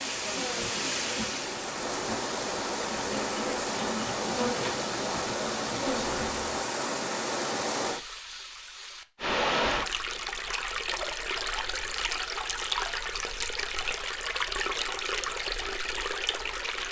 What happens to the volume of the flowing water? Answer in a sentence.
The loudness of the flowing water stays about the same.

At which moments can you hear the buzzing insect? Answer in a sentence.
You can hear the buzzing insect from 0.0 to 6.5 s.